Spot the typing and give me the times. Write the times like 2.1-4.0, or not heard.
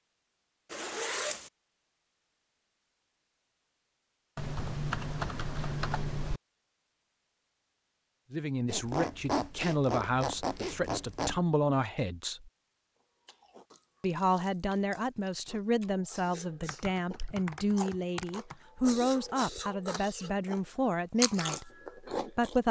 4.3-6.4, 16.6-18.6.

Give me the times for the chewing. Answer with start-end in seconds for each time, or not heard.
13.2-22.6.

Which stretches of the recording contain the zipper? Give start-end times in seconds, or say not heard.
0.7-1.5, 8.7-11.4, 18.8-19.8.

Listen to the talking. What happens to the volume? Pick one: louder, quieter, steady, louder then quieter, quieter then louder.
steady.